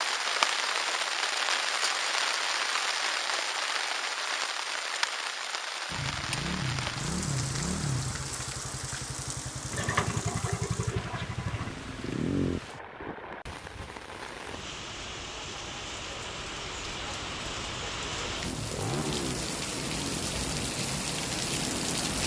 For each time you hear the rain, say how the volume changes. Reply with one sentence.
The rain can be heard from 0.0 to 22.2 s, getting quieter then louder.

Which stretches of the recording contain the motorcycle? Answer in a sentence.
The motorcycle can be heard from 5.8 to 12.6 s and from 18.4 to 22.2 s.